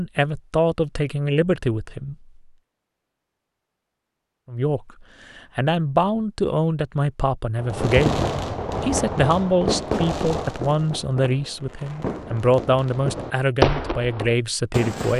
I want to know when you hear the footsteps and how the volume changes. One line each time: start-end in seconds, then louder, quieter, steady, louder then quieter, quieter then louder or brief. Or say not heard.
not heard.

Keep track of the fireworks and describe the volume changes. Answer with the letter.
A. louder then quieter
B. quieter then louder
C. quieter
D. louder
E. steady
B.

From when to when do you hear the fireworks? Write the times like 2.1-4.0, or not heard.
7.5-15.1.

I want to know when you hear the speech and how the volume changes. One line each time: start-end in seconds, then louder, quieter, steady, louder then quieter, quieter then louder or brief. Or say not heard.
0.0-2.1 brief
4.5-15.1 steady.